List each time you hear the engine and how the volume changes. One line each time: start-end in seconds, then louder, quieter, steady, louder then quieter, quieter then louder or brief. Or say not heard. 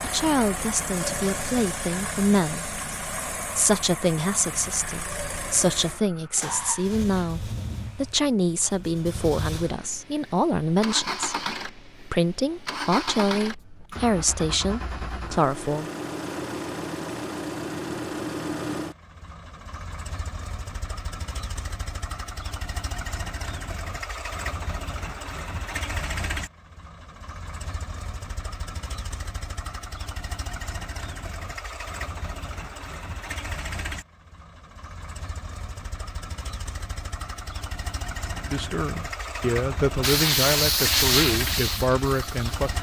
0.0-42.7 steady.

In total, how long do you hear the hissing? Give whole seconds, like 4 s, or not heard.
3 s.